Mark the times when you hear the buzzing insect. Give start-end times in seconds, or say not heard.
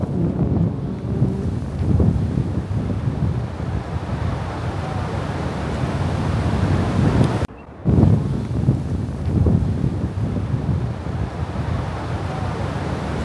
0.0-1.6.